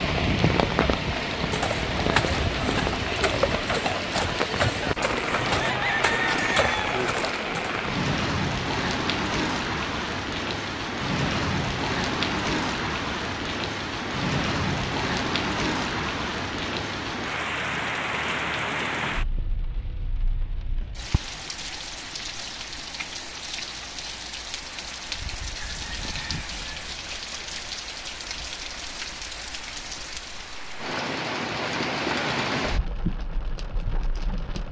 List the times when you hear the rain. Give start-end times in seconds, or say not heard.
0.0-34.6.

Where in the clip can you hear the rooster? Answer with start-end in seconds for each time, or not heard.
5.3-7.2, 25.6-27.2.